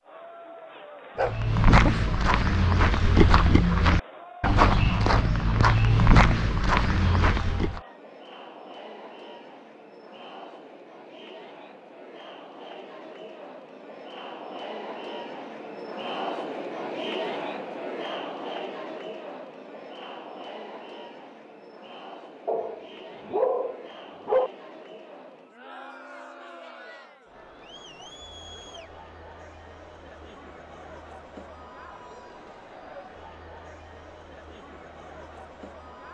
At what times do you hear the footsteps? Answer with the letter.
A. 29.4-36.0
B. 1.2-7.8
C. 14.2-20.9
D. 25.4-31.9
B.